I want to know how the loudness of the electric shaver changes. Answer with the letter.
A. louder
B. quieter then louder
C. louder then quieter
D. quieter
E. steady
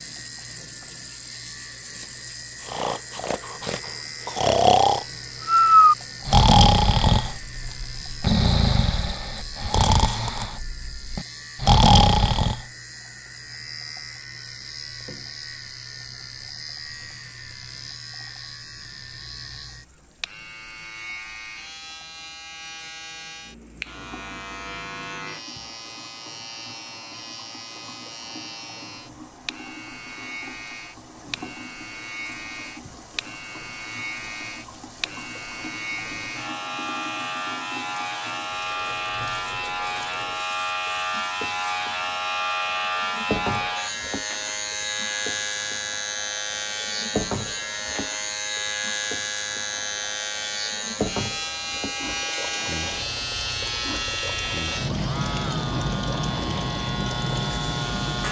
A.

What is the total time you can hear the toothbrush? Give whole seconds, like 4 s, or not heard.
not heard.